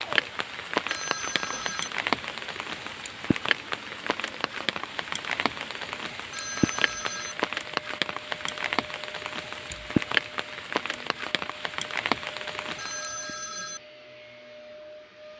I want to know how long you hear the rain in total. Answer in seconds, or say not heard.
13 s.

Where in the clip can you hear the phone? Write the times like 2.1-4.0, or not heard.
0.8-1.9, 6.3-7.3, 12.8-13.8.